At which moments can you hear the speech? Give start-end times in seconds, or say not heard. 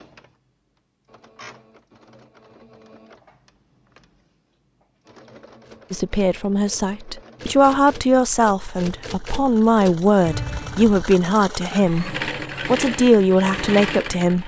5.9-14.4.